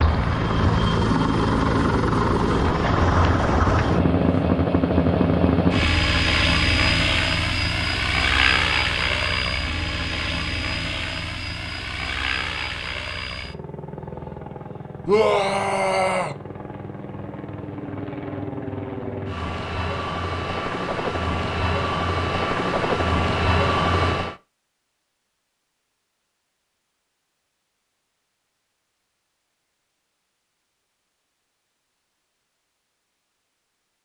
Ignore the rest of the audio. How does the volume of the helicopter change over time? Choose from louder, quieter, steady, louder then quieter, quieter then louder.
quieter then louder.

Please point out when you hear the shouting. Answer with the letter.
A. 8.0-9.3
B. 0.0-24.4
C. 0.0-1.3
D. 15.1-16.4
D.